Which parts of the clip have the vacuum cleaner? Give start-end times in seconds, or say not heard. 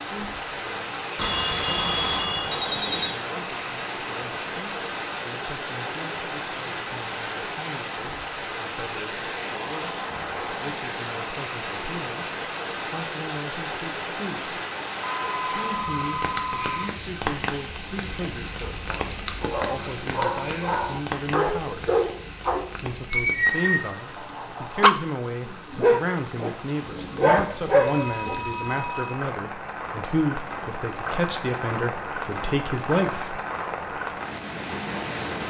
not heard.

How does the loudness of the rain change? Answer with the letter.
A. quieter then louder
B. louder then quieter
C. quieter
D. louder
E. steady
A.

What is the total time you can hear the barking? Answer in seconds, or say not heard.
9 s.